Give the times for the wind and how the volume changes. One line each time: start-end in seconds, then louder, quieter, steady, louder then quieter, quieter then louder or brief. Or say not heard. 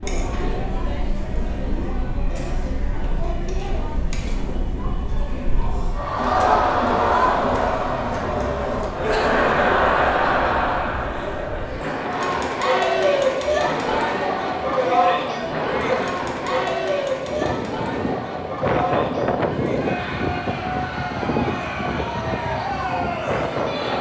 0.0-23.9 louder.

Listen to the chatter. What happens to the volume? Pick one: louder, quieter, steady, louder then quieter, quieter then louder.
louder then quieter.